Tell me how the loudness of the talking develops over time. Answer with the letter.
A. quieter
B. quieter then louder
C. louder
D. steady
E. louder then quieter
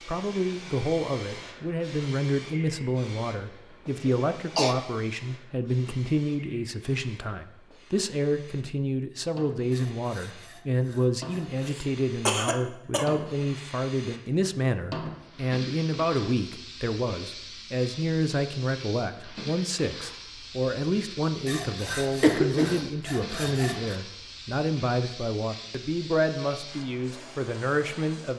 D.